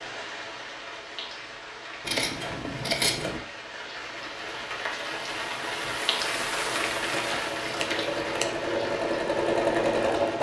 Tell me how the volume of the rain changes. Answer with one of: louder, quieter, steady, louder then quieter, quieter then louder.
louder then quieter.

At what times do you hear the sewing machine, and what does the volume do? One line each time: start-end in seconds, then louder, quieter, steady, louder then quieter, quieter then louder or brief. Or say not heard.
6.2-10.3 louder.